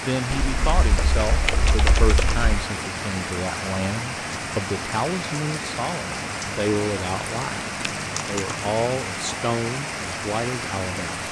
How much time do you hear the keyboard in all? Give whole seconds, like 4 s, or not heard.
3 s.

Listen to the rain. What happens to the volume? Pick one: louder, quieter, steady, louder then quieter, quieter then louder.
steady.